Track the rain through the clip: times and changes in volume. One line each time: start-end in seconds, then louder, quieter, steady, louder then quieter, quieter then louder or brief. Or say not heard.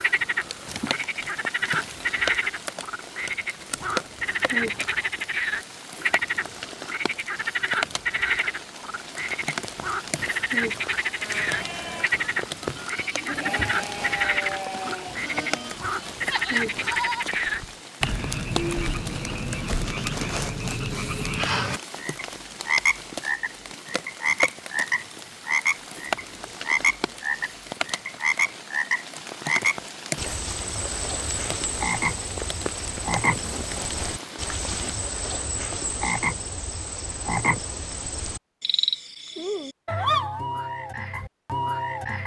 0.0-35.1 steady.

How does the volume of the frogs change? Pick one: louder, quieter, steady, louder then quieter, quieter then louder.
steady.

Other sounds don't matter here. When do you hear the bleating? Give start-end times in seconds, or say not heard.
11.2-17.8.